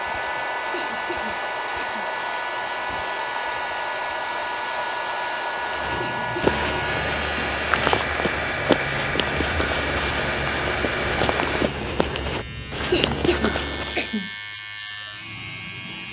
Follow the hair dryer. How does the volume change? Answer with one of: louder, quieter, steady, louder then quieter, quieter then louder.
steady.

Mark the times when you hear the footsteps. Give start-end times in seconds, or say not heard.
5.5-14.2.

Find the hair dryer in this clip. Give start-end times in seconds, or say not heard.
0.0-11.7.